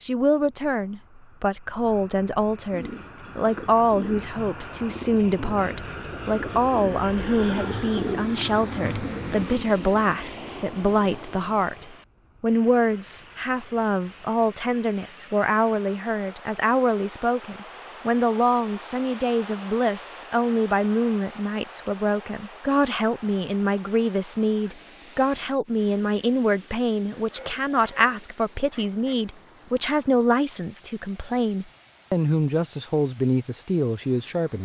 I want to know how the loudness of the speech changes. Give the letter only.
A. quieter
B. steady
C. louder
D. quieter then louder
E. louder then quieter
B.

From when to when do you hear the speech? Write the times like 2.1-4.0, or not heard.
0.0-34.6.